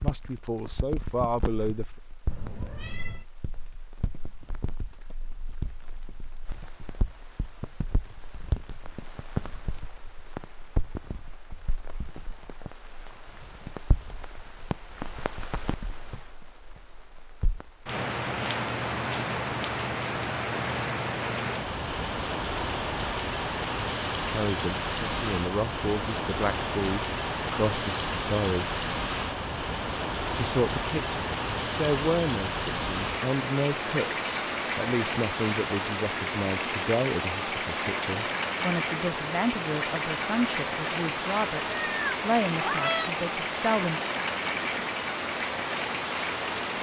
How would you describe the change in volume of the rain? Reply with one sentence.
The volume of the rain goes up.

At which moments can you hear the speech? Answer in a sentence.
The speech can be heard from 0.0 to 1.9 s, from 24.2 to 28.8 s and from 30.3 to 44.0 s.